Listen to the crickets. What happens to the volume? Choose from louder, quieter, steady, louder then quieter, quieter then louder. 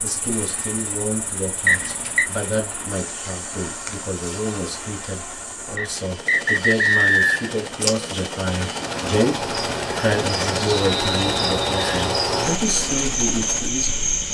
louder.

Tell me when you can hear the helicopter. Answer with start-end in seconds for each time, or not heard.
0.0-14.2.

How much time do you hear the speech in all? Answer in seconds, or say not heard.
14 s.